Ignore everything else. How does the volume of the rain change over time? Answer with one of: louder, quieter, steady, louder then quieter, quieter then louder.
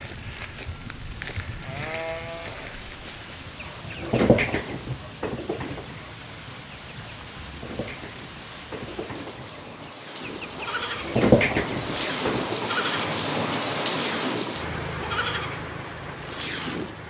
louder.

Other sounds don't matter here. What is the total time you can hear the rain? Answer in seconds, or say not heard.
17 s.